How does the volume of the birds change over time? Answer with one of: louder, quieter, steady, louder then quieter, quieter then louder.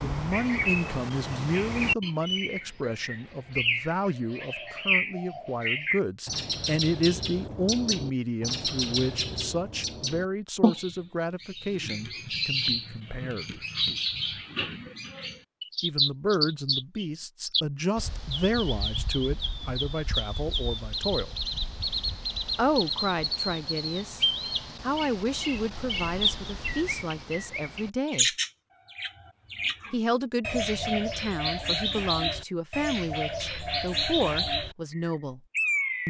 steady.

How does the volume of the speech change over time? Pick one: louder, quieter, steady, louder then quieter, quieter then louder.
steady.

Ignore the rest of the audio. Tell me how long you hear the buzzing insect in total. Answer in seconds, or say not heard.
not heard.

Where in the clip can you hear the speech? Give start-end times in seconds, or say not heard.
0.0-13.6, 15.8-21.4, 22.6-28.4, 29.9-35.4.